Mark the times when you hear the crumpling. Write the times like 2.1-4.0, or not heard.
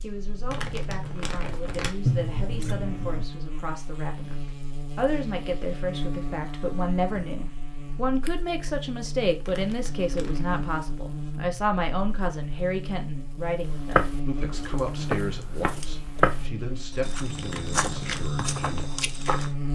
0.5-1.9, 9.4-10.6, 17.4-18.2.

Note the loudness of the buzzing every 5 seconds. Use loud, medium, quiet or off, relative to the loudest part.
medium, loud, loud, loud.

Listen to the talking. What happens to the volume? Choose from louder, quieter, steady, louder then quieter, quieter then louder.
louder then quieter.